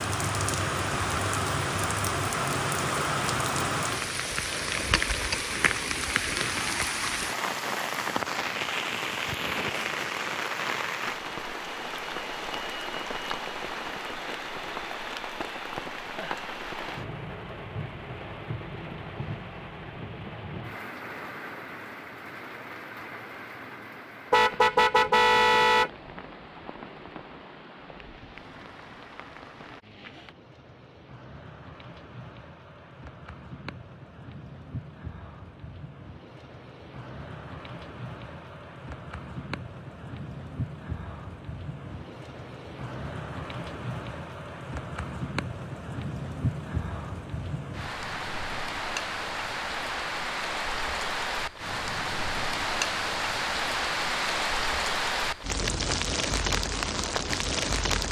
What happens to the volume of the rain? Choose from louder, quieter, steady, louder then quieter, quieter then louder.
quieter then louder.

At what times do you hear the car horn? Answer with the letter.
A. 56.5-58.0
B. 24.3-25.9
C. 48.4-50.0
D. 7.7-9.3
B.